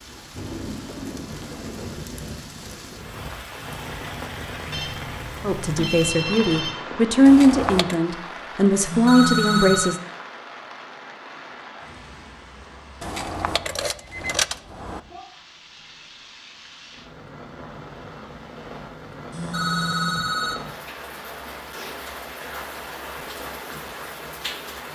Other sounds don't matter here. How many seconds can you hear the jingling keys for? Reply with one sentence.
The jingling keys can be heard for 3 seconds in total.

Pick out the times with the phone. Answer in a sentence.
The phone can be heard from 4.7 to 6.8 s, from 8.8 to 9.9 s and from 19.3 to 20.6 s.